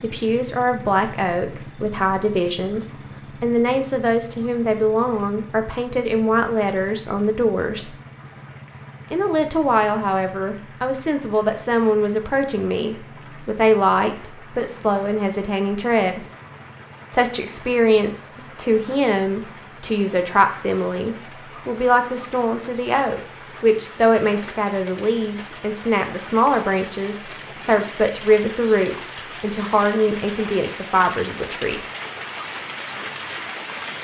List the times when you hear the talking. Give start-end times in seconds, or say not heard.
0.0-8.0, 9.1-16.2, 17.1-31.8.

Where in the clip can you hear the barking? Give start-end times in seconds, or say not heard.
not heard.